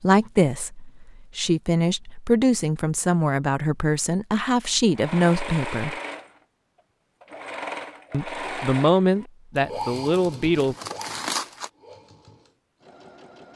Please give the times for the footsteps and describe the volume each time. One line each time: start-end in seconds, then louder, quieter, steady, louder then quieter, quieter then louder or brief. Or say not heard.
not heard.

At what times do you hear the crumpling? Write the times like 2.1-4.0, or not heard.
10.6-11.7.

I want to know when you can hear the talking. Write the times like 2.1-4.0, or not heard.
0.0-6.0, 8.1-10.8.